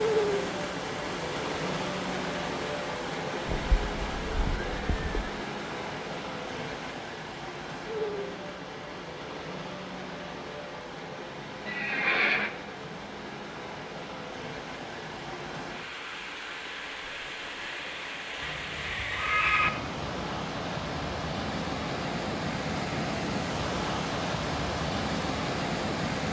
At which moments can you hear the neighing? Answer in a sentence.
The neighing can be heard from 3.5 to 5.3 s, from 11.7 to 12.5 s and from 18.4 to 19.7 s.